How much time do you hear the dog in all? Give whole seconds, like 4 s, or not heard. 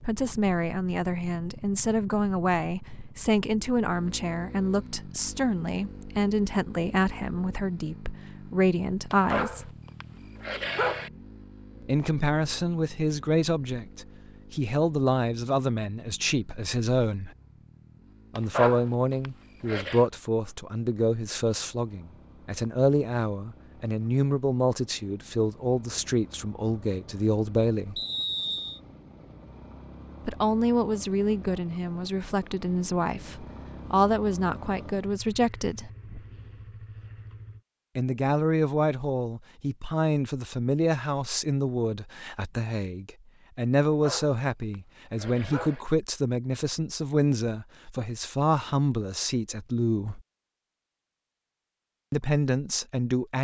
6 s.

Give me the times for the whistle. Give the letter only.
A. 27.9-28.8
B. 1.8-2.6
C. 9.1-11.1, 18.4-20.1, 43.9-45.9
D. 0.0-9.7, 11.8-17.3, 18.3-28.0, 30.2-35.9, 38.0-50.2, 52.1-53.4
A.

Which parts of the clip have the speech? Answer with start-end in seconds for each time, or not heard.
0.0-9.7, 11.8-17.3, 18.3-28.0, 30.2-35.9, 38.0-50.2, 52.1-53.4.